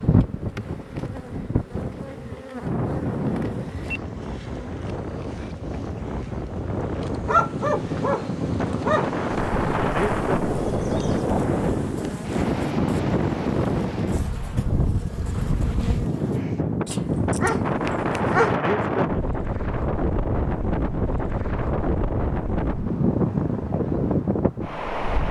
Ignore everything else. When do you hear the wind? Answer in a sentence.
You can hear the wind from 0.0 to 25.2 s.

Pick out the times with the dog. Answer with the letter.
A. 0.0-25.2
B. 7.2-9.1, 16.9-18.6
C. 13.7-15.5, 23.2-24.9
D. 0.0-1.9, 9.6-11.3
B.